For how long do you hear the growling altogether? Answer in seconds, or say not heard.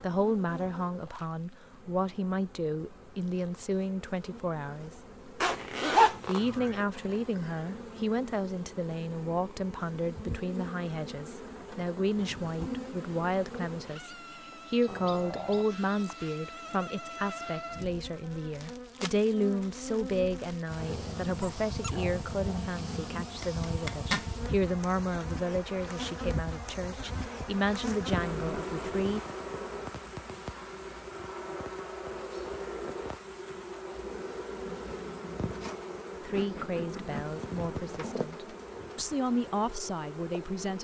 3 s.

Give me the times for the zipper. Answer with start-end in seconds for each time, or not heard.
5.4-6.8, 23.4-24.2.